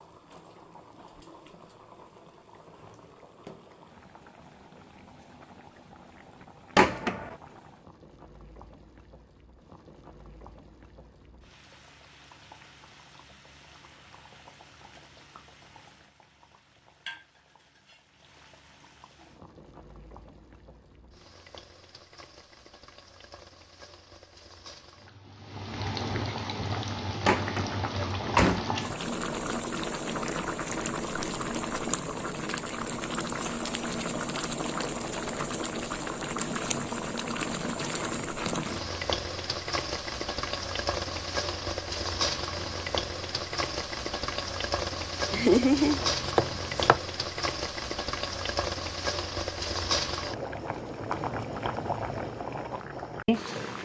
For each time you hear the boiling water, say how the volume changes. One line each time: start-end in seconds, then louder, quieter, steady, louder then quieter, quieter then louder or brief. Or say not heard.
0.0-53.8 louder.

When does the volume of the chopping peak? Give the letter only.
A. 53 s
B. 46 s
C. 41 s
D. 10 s
B.